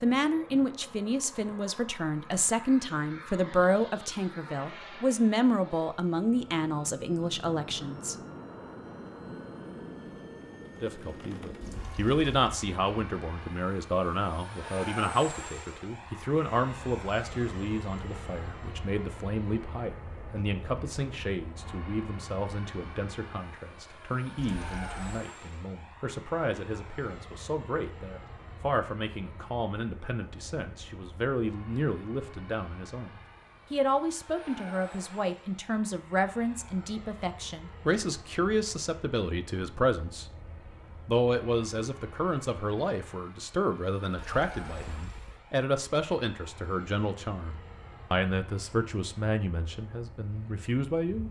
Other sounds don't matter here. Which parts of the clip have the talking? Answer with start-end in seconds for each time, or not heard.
0.0-8.2, 10.8-40.2, 41.0-51.2.